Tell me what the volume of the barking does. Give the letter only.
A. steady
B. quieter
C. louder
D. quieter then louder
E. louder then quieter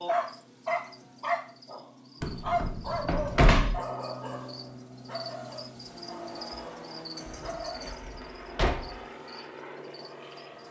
B.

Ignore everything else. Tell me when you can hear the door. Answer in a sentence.
You can hear the door from 2.2 to 3.8 s and from 7.2 to 9.0 s.